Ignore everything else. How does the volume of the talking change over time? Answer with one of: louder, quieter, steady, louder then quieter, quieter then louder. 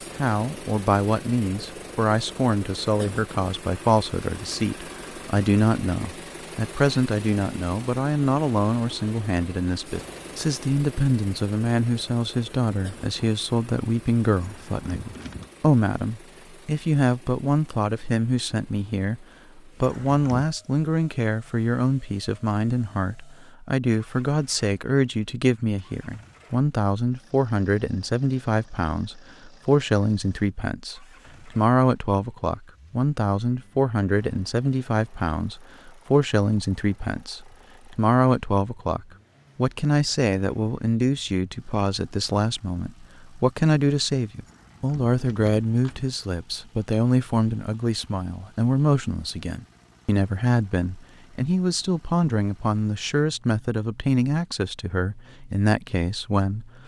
steady.